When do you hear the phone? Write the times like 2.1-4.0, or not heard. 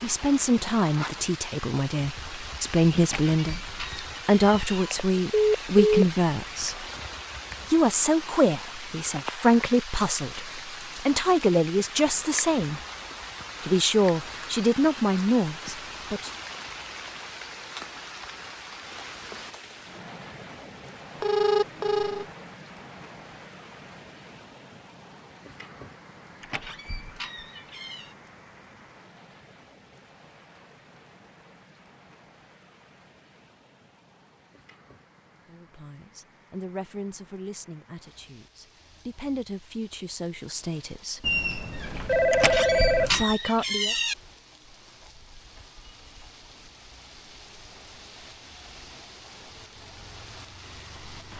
4.8-6.0, 21.2-22.2, 41.2-43.2.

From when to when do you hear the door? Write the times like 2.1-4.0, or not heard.
3.0-4.8, 26.4-28.1, 42.3-44.1.